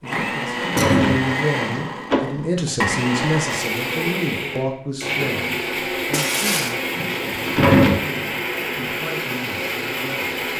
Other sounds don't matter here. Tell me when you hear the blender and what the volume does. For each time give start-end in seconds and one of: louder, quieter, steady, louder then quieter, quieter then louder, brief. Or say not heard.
0.0-10.5 steady.